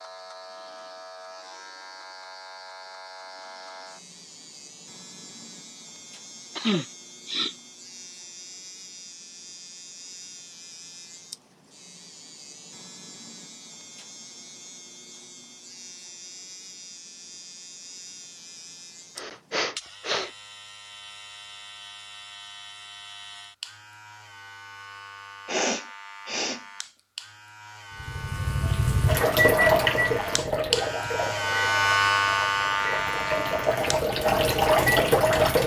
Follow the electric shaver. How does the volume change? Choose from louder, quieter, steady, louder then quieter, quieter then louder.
louder.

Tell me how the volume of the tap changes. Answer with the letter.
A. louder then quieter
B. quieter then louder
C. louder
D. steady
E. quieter
B.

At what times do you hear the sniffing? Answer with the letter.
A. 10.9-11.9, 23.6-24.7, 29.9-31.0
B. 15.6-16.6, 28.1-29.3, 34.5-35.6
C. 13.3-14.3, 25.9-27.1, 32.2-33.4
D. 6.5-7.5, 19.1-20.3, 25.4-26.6
D.